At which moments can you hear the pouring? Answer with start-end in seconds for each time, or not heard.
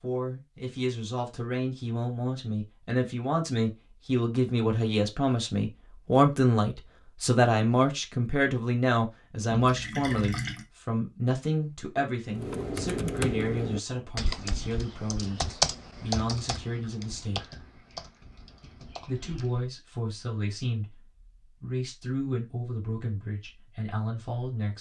9.5-10.7.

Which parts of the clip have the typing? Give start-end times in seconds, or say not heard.
12.3-19.7.